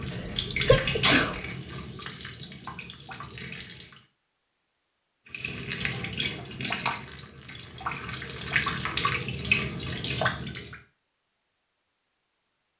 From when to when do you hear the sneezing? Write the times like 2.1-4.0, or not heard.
0.1-1.4.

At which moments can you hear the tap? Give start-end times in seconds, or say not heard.
0.0-4.0, 5.3-10.8.